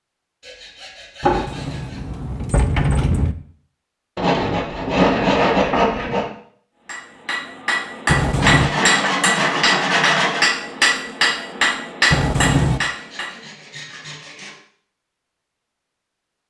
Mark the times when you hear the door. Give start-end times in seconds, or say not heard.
1.2-3.4, 8.1-8.7, 12.1-12.8.